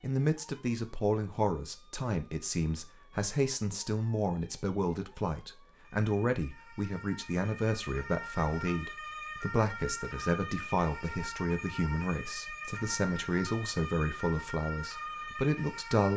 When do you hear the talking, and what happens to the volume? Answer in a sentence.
You can hear the talking from 0.0 to 16.1 s, at a steady volume.